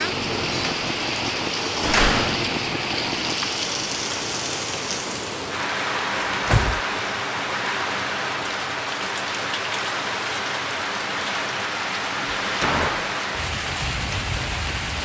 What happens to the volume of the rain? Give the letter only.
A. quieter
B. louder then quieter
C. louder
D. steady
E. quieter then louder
D.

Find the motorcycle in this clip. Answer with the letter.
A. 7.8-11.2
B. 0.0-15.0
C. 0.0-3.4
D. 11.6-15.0
C.